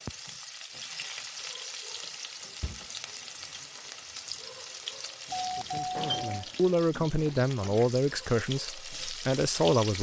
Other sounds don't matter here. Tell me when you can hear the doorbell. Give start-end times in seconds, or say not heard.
5.3-6.5.